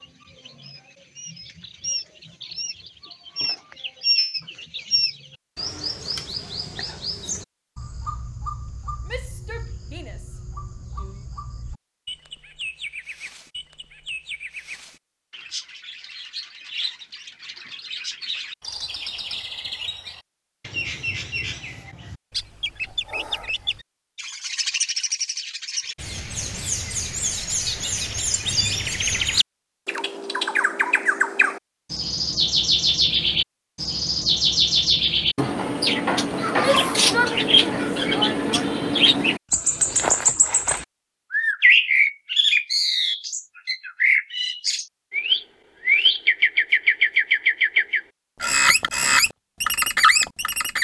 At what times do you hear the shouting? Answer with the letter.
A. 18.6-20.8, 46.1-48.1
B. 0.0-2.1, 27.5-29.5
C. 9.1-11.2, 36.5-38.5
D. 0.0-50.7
C.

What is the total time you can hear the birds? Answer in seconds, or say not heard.
51 s.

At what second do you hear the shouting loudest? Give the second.
37 s.